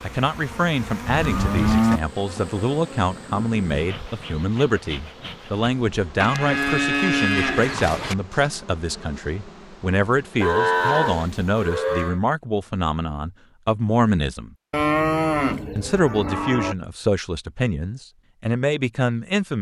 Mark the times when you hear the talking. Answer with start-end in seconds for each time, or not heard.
0.0-14.6, 15.8-19.5.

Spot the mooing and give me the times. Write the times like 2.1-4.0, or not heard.
1.1-2.0, 6.2-8.2, 10.4-12.2, 14.7-16.8.